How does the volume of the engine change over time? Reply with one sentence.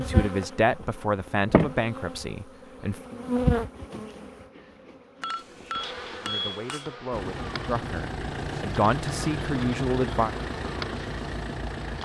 The volume of the engine stays about the same.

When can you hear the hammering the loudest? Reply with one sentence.
The volume of the hammering peaks at 6 seconds.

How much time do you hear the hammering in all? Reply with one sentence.
You can hear the hammering for 2 seconds altogether.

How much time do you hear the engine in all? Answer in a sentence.
The engine can be heard for 5 seconds in total.